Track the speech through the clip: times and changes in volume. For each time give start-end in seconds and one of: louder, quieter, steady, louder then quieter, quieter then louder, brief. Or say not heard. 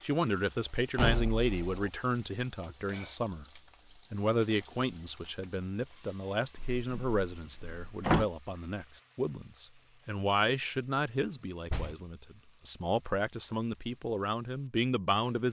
0.0-15.4 steady.